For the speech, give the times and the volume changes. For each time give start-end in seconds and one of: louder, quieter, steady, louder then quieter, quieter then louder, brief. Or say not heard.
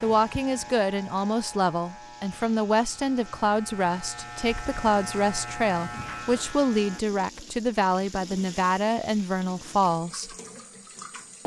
0.0-10.3 steady.